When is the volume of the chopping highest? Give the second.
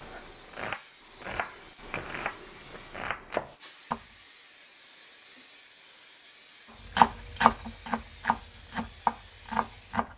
7 s.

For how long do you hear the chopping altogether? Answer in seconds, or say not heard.
7 s.